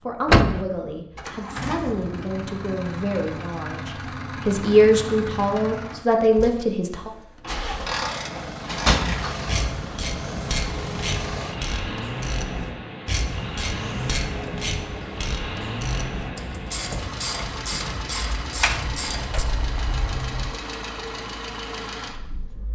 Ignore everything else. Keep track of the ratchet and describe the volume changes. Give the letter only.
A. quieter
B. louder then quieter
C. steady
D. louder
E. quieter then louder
C.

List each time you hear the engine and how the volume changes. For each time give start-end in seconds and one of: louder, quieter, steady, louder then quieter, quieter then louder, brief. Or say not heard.
0.0-22.7 steady.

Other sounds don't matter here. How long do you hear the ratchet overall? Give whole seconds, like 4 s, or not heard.
12 s.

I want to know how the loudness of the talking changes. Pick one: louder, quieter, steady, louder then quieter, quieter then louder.
louder.